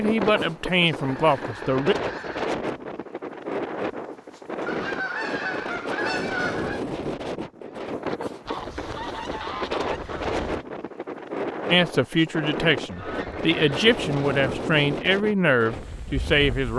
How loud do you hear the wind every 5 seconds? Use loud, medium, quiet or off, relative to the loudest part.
loud, loud, loud, medium.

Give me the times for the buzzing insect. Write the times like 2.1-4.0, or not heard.
not heard.